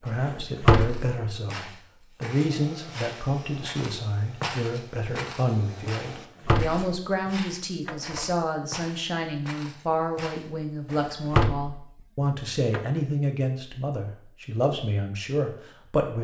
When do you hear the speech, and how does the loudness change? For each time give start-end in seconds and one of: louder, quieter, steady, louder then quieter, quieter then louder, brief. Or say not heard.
0.0-16.2 steady.